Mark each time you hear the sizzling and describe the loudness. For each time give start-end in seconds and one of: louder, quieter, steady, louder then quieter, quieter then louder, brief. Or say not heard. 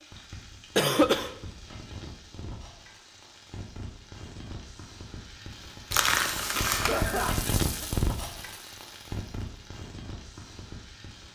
0.0-11.3 louder then quieter.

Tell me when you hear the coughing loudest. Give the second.
1 s.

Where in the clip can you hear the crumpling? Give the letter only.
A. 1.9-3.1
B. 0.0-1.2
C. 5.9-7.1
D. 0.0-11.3
C.